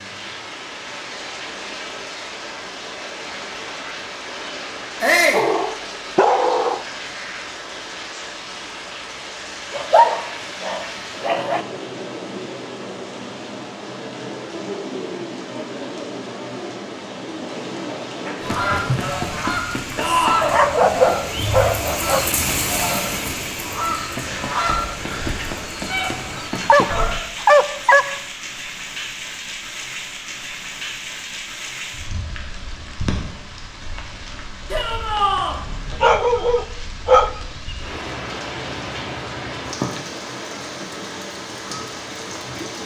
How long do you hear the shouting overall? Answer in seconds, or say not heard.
2 s.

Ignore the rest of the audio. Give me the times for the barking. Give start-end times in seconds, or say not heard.
5.3-6.8, 9.7-11.7, 20.4-22.3, 26.6-28.2, 35.5-37.3.